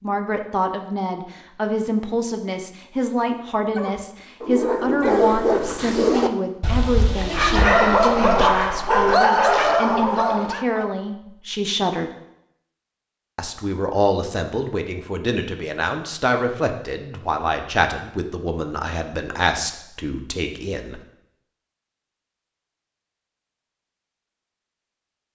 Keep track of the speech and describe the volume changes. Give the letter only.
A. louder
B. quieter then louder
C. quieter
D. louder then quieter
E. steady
E.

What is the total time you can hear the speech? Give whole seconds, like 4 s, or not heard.
20 s.